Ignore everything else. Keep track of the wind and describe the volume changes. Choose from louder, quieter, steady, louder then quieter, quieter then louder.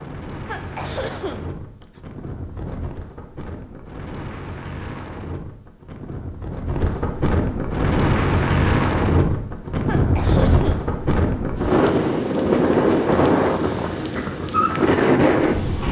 louder.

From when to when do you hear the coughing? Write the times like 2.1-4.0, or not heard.
0.5-2.0, 9.8-10.8.